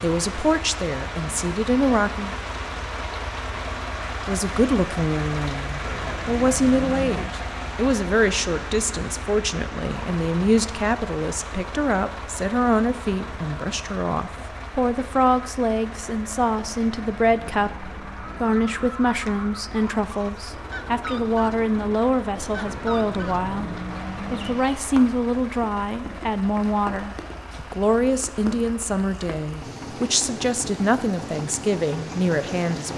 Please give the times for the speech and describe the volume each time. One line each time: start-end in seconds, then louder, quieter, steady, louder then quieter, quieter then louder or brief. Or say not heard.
0.0-2.4 brief
4.2-32.9 steady.